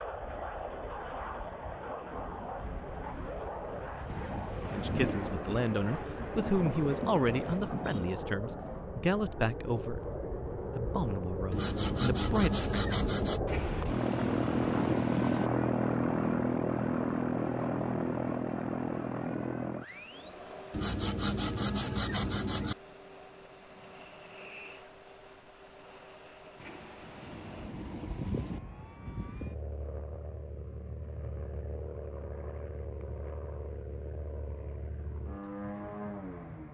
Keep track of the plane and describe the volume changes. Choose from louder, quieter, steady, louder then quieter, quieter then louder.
louder then quieter.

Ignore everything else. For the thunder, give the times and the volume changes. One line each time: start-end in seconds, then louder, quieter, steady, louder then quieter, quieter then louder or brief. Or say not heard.
4.0-8.1 quieter then louder
13.4-15.5 brief
26.6-28.6 brief.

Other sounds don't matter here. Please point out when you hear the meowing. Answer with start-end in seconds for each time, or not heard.
not heard.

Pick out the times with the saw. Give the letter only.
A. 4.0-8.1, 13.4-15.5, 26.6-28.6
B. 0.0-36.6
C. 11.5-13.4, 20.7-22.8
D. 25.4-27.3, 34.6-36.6
C.